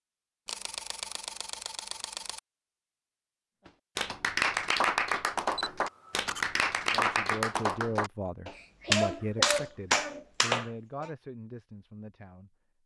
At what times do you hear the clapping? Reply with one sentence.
The clapping can be heard from 4.0 to 11.1 s.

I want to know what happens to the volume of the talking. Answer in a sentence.
The volume of the talking goes down.